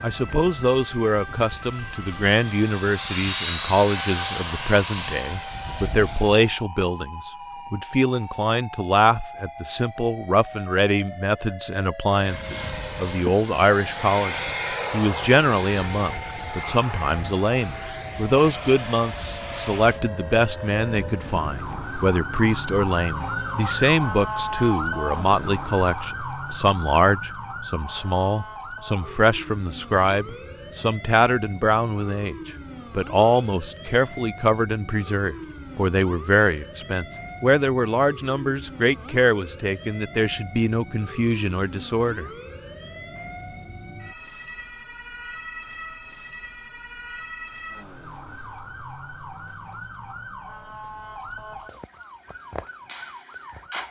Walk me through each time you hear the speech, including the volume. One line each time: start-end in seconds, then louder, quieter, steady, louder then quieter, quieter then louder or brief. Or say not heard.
0.0-42.3 steady.